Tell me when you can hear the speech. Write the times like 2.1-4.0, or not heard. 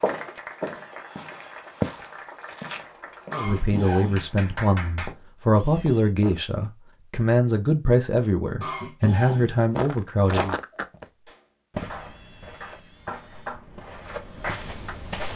3.3-10.6.